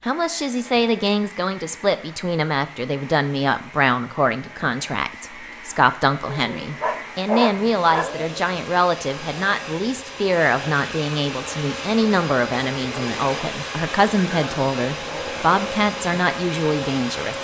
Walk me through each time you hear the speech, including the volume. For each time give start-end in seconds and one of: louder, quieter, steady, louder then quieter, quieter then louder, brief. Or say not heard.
0.1-17.3 steady.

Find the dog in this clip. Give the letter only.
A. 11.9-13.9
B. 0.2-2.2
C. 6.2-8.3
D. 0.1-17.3
C.